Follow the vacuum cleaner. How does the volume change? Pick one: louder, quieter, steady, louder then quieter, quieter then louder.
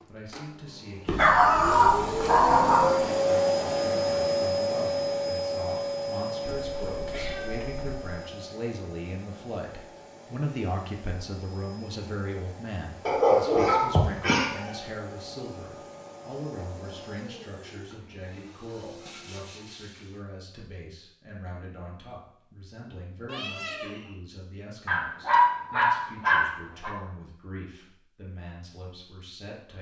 quieter.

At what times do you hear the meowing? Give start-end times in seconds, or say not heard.
6.5-8.1, 23.2-24.1.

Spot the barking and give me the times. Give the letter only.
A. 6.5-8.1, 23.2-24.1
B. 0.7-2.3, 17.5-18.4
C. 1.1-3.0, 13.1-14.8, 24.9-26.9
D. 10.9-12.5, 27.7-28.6
C.